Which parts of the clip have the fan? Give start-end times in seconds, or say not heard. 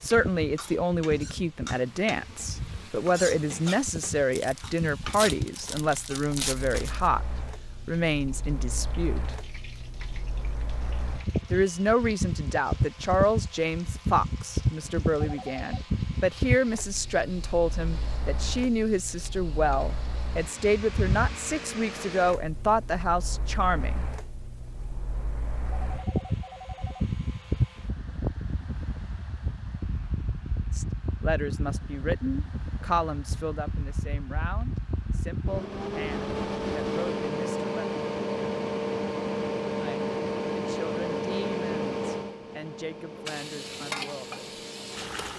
0.0-45.3.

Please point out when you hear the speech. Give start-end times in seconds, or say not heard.
0.0-7.2, 7.8-9.3, 11.5-24.1, 30.7-37.9, 39.8-44.5.